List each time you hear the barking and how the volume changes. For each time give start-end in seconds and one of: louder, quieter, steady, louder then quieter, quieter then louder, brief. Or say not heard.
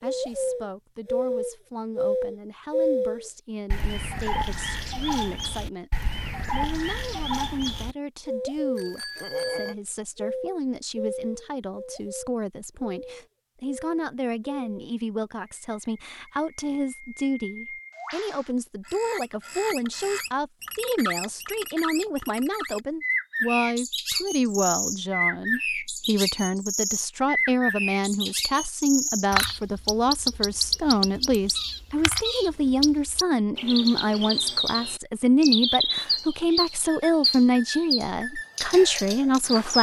not heard.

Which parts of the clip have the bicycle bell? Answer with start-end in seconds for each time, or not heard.
8.8-9.8.